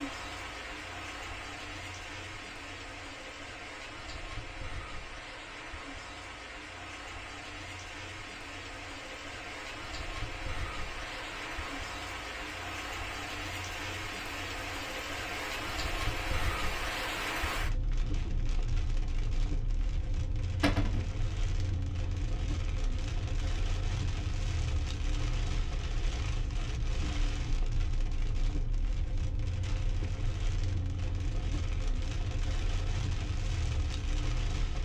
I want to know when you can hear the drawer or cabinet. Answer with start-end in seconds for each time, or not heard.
20.6-21.1.